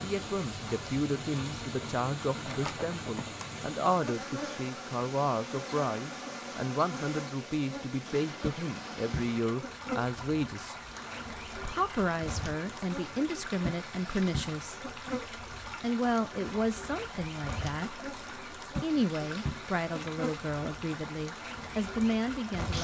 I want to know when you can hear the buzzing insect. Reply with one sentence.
You can hear the buzzing insect from 0.0 to 22.7 s.